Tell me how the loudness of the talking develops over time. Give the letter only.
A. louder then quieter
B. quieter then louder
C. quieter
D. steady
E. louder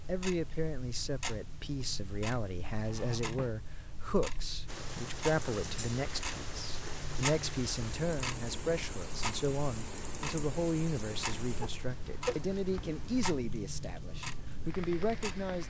D.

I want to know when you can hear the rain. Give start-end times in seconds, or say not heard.
4.7-15.6.